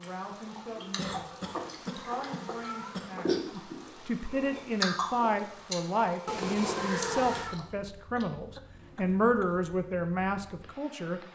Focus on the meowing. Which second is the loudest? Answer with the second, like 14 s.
7 s.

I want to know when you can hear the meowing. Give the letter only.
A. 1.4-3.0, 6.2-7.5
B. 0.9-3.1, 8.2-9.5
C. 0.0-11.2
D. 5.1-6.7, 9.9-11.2
A.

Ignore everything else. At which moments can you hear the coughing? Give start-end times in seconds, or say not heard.
0.9-3.1, 8.2-9.5.